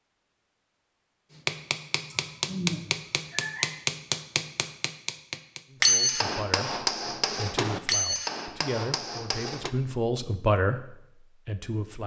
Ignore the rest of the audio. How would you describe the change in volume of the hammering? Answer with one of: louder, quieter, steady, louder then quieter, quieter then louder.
louder then quieter.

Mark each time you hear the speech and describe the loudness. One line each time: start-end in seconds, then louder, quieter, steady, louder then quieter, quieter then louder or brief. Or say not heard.
5.7-12.0 louder.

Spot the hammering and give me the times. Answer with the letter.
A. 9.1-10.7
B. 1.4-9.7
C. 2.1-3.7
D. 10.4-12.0
B.